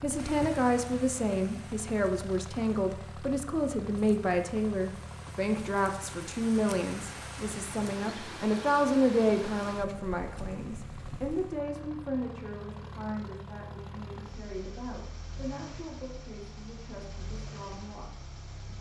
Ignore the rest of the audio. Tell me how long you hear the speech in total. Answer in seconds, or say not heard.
19 s.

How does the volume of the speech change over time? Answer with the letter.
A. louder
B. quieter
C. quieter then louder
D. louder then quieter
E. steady
B.